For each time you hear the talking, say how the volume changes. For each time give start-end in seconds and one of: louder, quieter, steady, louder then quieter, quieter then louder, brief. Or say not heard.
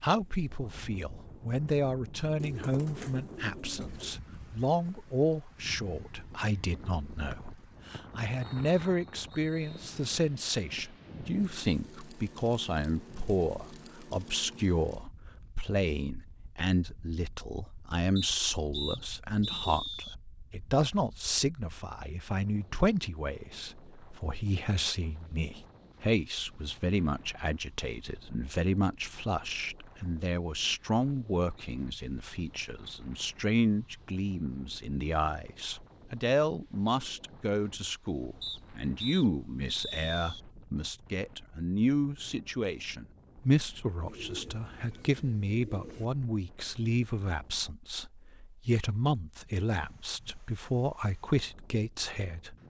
0.0-52.5 steady.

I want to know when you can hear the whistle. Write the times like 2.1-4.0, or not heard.
7.3-9.9, 18.1-20.1, 38.4-40.4.